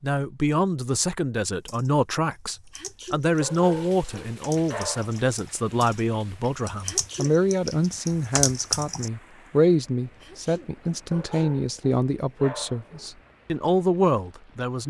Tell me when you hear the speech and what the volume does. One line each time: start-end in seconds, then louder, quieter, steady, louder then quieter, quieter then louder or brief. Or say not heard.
0.0-14.8 steady.